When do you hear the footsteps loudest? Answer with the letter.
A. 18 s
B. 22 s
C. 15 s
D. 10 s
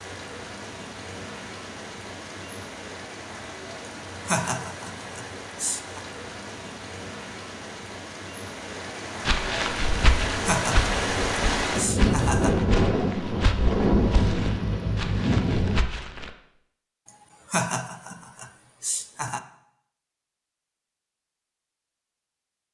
D.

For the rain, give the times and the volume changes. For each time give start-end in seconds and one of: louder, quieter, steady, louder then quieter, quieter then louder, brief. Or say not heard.
0.0-15.8 louder.